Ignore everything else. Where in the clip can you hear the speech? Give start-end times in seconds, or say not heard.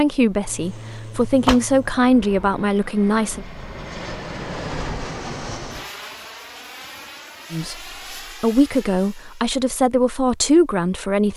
0.0-3.5, 7.5-11.3.